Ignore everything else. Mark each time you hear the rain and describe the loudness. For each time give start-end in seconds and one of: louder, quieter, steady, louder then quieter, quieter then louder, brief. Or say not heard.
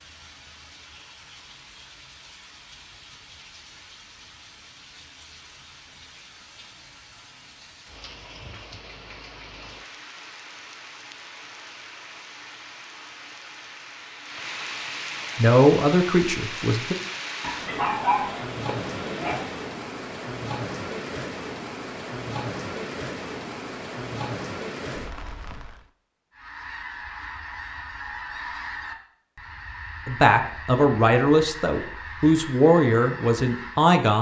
0.0-25.9 louder.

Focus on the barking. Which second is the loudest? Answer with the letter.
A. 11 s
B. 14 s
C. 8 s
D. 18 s
D.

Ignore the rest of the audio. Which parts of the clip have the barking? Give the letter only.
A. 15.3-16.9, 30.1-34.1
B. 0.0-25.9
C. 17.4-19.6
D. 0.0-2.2
C.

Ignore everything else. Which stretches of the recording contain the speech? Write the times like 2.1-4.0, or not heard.
15.3-16.9, 30.1-34.1.